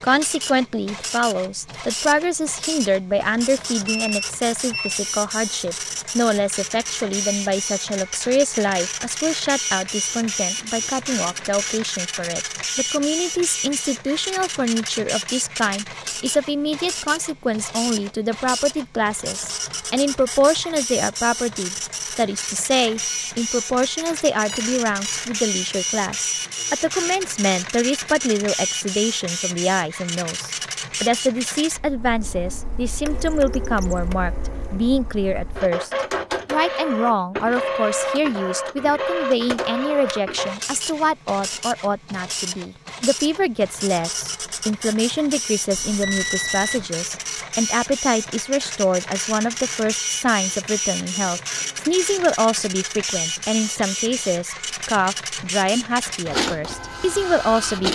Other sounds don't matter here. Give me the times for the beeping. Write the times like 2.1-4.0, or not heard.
3.9-5.0, 24.4-25.2, 45.7-46.9.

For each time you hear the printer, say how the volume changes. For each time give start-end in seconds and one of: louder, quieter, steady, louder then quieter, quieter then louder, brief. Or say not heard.
0.0-57.9 steady.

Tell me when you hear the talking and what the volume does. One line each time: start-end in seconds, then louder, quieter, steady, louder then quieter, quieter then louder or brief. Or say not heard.
0.0-57.9 steady.